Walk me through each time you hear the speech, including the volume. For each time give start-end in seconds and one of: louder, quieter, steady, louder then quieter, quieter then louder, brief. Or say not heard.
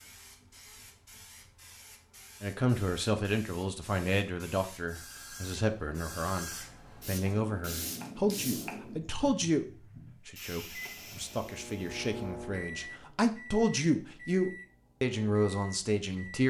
2.4-9.7 steady
10.2-16.4 louder.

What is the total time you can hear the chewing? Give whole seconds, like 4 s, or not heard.
not heard.